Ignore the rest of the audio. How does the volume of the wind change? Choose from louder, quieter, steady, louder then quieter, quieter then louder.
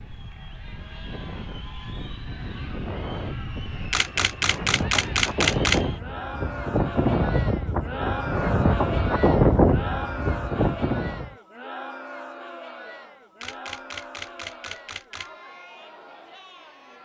louder.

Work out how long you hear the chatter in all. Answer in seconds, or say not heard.
17 s.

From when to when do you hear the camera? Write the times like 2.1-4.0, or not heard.
3.9-5.8, 13.4-15.3.